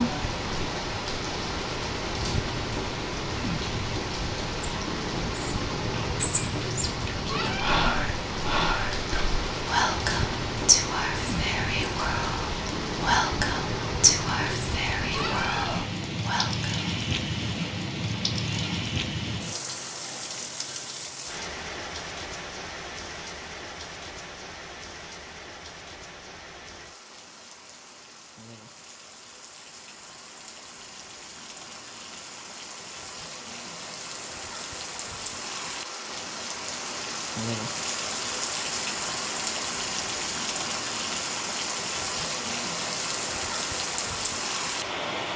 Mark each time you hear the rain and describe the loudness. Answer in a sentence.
You can hear the rain from 0.0 to 45.3 s, getting quieter then louder.